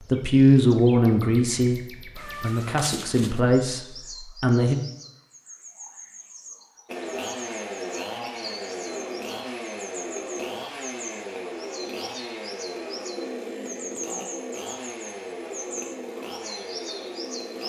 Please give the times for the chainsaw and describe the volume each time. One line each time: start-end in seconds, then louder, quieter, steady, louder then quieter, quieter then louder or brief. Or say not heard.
6.8-17.6 steady.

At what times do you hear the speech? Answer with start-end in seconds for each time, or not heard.
0.1-4.8.